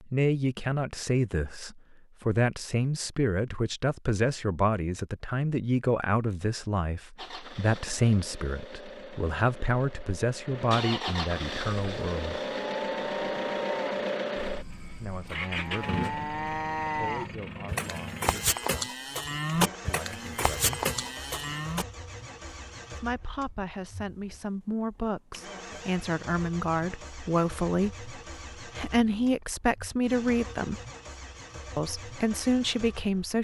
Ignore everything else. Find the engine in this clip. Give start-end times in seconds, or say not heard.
7.2-33.3.